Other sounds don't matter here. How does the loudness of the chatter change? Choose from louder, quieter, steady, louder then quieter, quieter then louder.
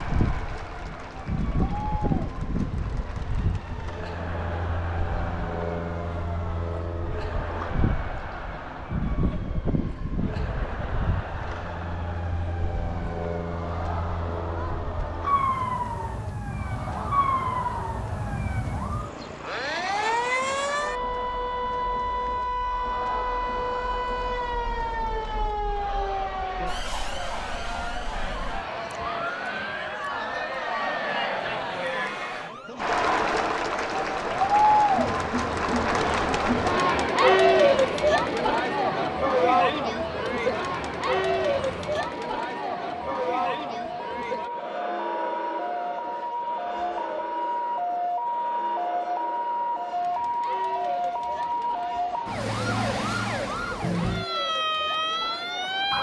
louder then quieter.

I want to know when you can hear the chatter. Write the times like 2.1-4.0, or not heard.
0.0-55.9.